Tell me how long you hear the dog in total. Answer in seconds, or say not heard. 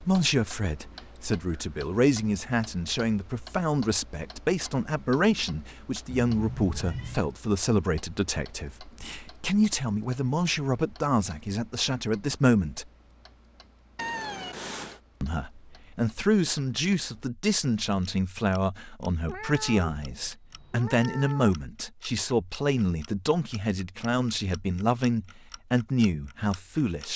not heard.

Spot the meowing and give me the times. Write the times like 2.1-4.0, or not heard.
6.1-7.2, 13.9-15.0, 19.2-21.6.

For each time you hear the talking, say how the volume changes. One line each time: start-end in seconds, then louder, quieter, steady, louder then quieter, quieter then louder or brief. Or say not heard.
0.0-12.8 steady
15.2-27.1 steady.